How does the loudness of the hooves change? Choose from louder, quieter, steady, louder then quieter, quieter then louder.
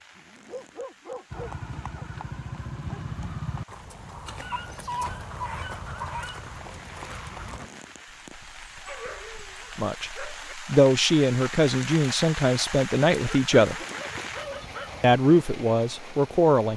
quieter.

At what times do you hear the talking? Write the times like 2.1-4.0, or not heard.
9.8-13.8, 15.0-16.7.